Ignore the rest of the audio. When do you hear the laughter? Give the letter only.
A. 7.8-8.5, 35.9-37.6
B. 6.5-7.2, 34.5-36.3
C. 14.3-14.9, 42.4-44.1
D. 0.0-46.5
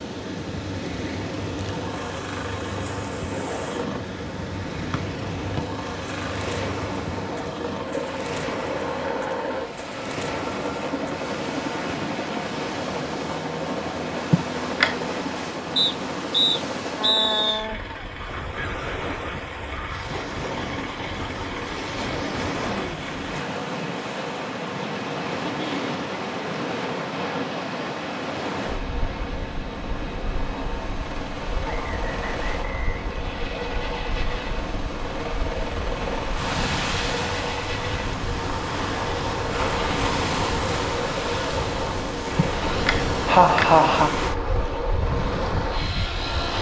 C.